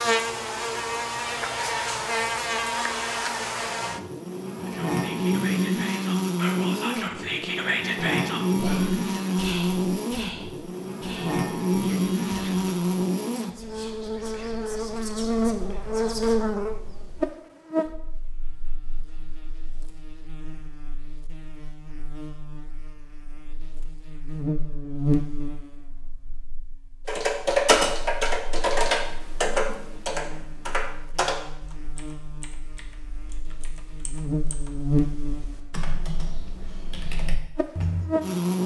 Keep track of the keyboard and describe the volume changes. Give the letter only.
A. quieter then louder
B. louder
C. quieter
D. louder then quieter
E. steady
A.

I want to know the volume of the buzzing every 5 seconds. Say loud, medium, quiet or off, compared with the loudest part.
loud, loud, loud, loud, quiet, medium, medium, loud.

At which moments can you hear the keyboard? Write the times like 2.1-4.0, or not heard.
27.1-38.1.